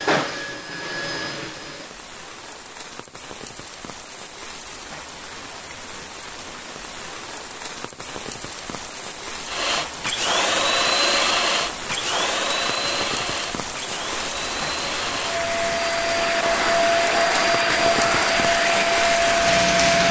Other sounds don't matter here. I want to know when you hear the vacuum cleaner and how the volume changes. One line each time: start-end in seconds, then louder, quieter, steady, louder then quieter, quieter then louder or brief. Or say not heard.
0.0-1.9 brief
9.4-20.0 quieter then louder.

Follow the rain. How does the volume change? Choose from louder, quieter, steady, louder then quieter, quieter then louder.
louder.